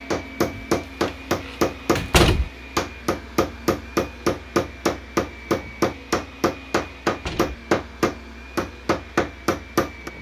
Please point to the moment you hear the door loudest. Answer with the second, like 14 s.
2 s.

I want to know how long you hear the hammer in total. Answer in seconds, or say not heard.
10 s.